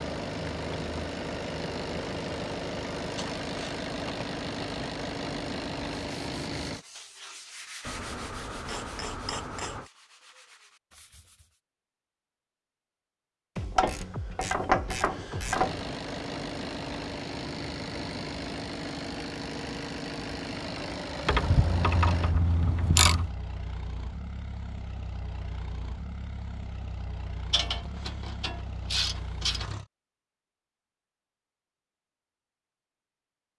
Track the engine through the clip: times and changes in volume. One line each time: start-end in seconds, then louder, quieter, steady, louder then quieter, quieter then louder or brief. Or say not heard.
0.0-6.8 steady
15.4-29.9 quieter.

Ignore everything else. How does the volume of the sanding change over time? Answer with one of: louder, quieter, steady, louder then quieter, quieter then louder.
quieter.